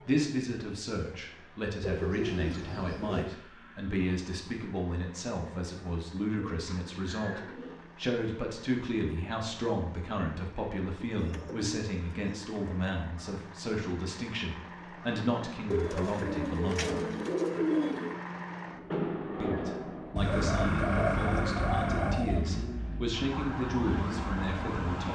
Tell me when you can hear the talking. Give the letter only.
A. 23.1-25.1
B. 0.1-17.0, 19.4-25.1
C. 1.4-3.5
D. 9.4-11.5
B.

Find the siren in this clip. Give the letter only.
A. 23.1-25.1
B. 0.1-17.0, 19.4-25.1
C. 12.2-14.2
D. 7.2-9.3
A.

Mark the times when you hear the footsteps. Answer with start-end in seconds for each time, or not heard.
not heard.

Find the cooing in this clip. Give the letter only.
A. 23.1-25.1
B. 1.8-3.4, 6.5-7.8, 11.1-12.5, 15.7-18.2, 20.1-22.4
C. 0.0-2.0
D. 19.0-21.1
B.